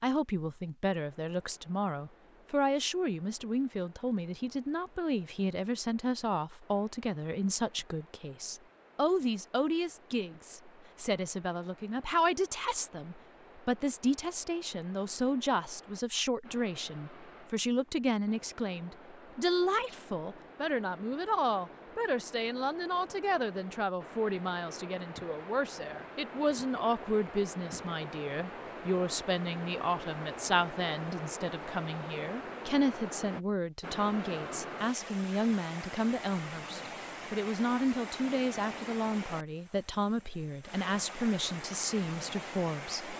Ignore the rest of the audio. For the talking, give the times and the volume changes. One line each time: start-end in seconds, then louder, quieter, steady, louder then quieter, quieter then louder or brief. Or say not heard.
0.0-43.1 steady.